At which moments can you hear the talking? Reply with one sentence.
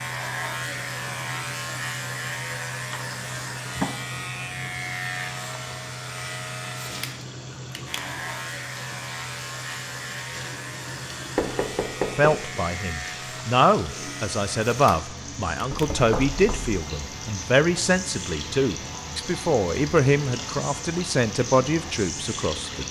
The talking can be heard from 12.2 to 22.8 s.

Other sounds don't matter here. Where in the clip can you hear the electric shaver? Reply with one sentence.
You can hear the electric shaver from 0.0 to 22.8 s.